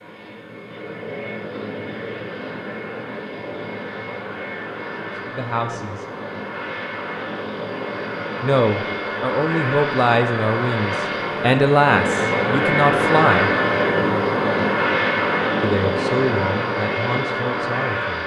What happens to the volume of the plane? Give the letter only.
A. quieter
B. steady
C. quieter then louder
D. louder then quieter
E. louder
E.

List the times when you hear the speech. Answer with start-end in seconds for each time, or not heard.
4.9-6.0, 8.4-13.5, 15.6-18.2.